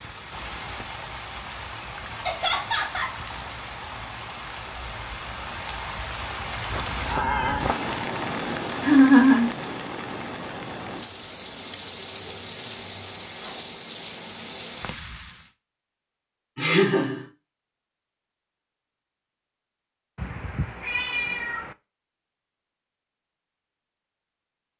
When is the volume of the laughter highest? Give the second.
9 s.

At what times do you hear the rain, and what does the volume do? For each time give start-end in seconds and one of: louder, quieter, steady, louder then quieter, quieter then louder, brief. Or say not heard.
0.0-15.5 louder then quieter.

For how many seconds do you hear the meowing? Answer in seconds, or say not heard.
3 s.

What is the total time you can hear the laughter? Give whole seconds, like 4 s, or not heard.
2 s.